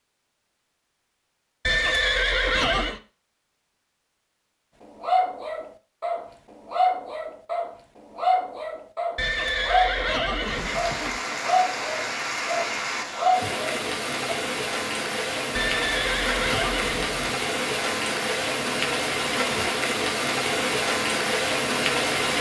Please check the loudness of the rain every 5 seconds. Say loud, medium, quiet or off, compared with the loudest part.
off, off, medium, loud, loud.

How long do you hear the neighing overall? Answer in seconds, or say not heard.
5 s.